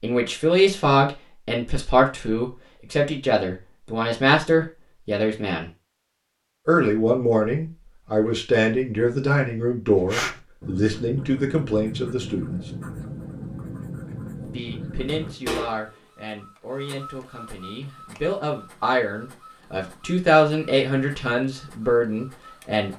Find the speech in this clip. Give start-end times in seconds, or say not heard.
0.0-5.7, 6.7-12.6, 14.4-22.9.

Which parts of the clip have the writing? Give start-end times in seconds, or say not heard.
9.9-15.3.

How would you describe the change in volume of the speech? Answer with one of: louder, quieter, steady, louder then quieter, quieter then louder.
quieter then louder.